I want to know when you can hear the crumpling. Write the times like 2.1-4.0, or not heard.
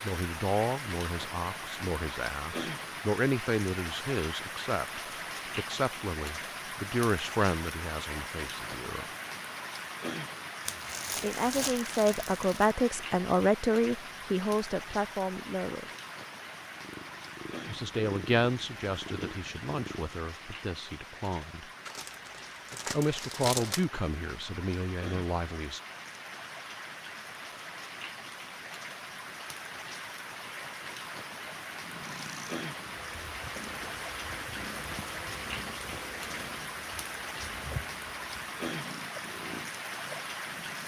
10.7-12.8, 21.9-23.9.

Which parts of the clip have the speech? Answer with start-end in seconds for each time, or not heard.
0.0-9.1, 11.2-15.9, 17.6-21.6, 22.9-25.8.